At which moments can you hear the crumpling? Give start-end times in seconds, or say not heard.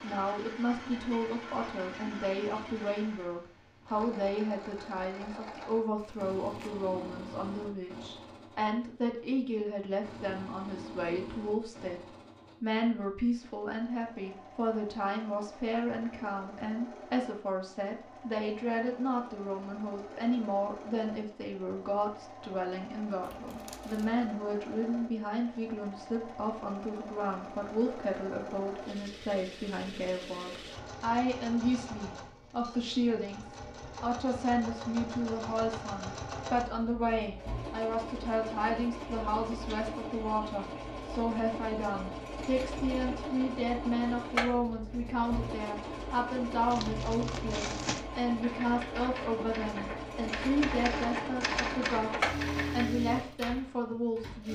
6.0-6.8, 23.2-24.2, 46.7-48.0.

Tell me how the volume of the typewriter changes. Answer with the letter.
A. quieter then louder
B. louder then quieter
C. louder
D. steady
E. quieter
B.